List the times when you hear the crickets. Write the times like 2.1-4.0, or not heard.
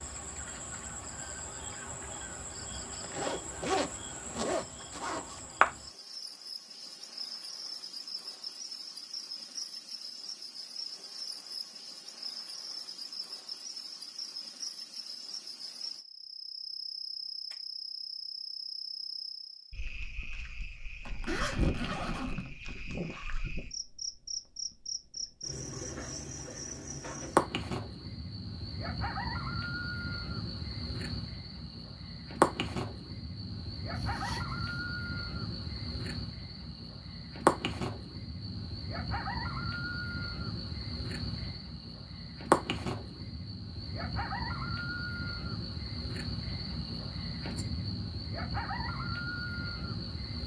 0.0-50.4.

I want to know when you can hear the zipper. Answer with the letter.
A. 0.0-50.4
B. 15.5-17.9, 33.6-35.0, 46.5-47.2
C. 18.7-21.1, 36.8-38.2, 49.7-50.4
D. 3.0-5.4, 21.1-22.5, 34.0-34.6
D.